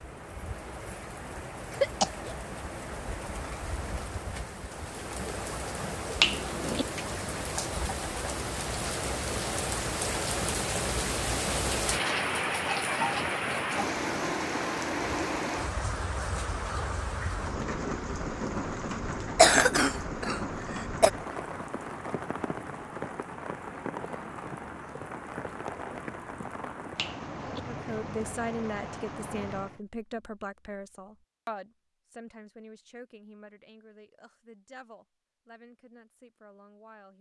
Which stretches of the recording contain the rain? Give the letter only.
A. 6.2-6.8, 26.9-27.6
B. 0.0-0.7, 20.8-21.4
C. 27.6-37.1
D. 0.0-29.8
D.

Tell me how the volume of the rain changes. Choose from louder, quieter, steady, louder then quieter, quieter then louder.
louder then quieter.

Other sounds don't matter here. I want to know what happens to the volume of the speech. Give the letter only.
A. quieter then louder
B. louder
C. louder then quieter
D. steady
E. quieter
E.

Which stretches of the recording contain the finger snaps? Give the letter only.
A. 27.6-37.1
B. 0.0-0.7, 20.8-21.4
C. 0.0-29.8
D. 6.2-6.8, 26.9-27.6
D.